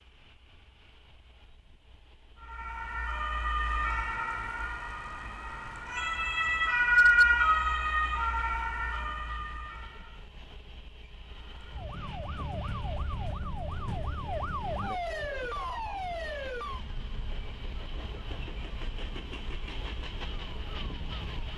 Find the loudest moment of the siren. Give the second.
7 s.